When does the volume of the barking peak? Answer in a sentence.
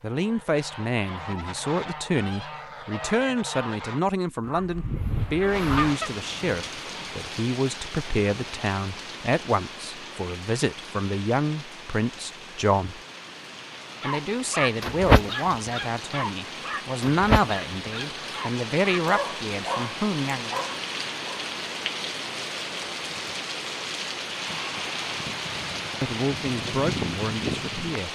The loudest moment of the barking is at 15 seconds.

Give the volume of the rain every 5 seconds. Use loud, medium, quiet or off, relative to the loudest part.
off, medium, medium, medium, loud, loud.